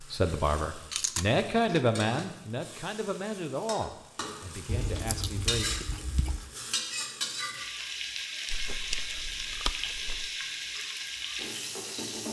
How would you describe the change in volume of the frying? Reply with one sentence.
The volume of the frying goes up.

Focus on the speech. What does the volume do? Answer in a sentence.
The loudness of the speech goes down.